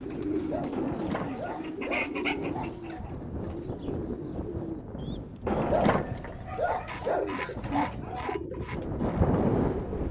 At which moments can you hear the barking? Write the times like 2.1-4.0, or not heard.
0.5-3.1, 5.7-8.3.